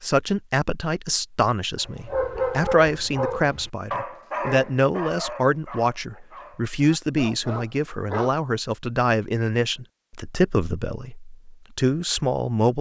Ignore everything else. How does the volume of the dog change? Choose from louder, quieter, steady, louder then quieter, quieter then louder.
quieter then louder.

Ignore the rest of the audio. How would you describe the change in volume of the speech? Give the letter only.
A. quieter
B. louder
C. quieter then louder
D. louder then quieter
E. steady
E.